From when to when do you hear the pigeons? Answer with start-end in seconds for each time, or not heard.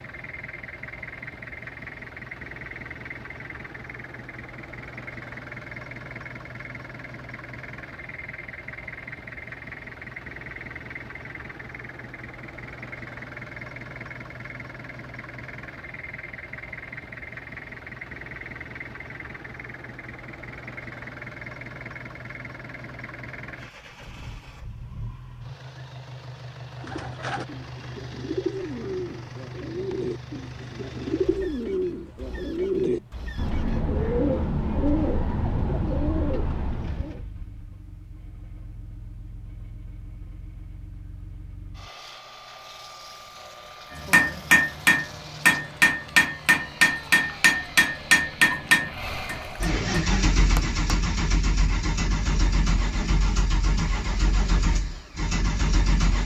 26.8-37.2.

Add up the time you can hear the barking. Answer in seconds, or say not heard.
not heard.